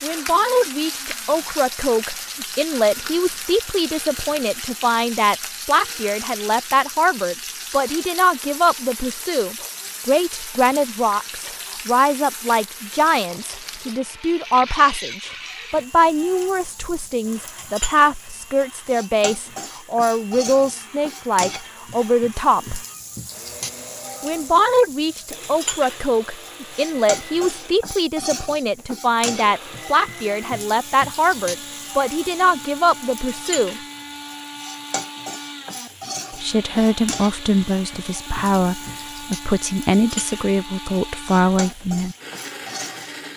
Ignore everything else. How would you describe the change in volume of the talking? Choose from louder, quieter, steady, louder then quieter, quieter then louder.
steady.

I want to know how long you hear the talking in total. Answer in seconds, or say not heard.
38 s.